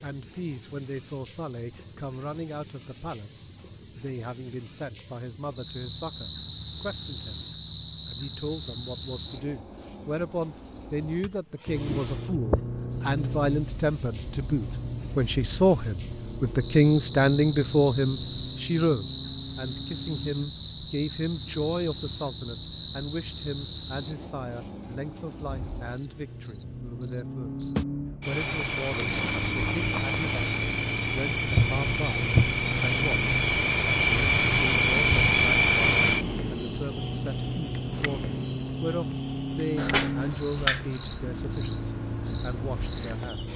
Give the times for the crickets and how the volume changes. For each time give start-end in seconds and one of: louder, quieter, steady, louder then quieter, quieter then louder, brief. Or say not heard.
0.0-43.5 louder.